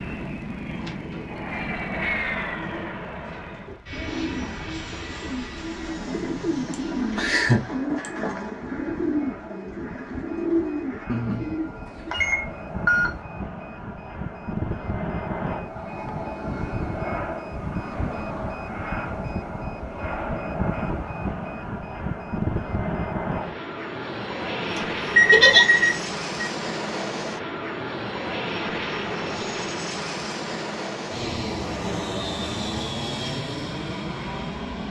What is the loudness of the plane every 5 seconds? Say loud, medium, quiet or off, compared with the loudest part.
loud, medium, medium, loud, loud, loud, loud.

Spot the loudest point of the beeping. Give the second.
25 s.